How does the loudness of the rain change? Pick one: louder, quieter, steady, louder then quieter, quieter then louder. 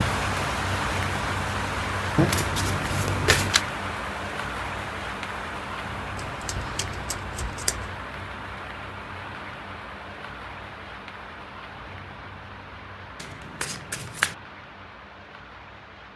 quieter.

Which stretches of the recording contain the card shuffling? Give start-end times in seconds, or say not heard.
2.1-3.6, 6.2-7.9, 13.2-14.3.